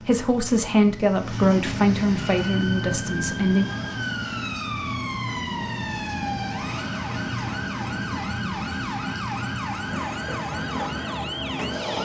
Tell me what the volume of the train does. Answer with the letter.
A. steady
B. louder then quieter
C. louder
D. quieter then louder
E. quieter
A.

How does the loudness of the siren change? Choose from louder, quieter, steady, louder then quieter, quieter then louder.
steady.